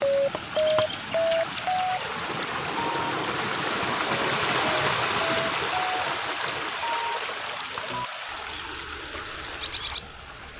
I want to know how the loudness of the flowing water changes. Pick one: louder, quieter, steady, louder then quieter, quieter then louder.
louder then quieter.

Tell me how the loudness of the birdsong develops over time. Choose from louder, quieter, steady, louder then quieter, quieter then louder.
quieter then louder.